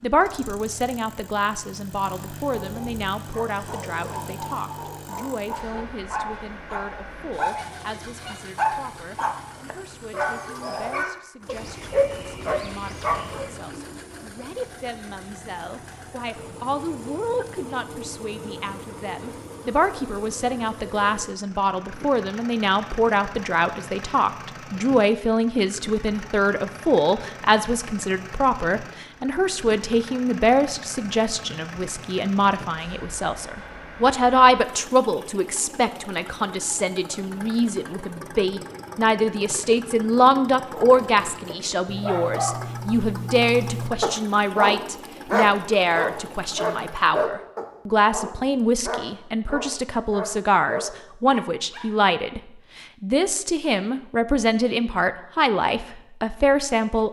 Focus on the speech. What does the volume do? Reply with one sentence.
The loudness of the speech goes up.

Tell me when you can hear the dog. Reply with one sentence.
The dog can be heard from 2.5 to 13.5 s and from 40.7 to 51.9 s.